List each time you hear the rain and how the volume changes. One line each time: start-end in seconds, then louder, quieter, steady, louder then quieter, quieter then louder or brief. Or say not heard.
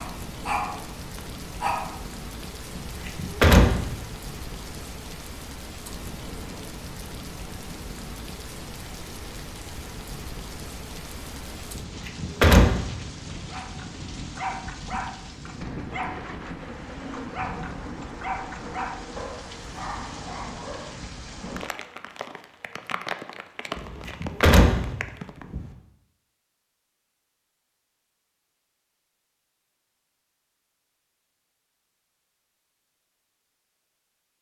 0.0-25.4 steady.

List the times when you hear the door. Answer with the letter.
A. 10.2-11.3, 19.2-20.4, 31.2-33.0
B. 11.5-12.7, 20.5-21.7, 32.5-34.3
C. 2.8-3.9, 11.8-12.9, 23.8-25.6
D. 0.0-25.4
C.